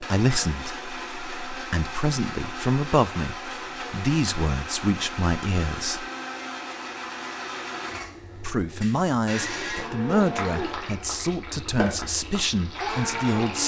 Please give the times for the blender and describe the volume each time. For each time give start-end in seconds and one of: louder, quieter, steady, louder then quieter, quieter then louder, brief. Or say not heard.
0.0-13.6 steady.